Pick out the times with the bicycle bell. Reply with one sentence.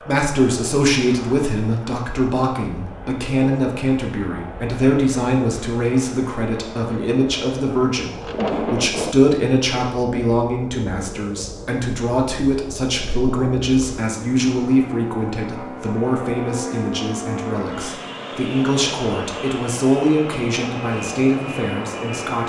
The bicycle bell can't be heard in this clip.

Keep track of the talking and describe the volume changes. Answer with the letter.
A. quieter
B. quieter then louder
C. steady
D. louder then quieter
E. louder
C.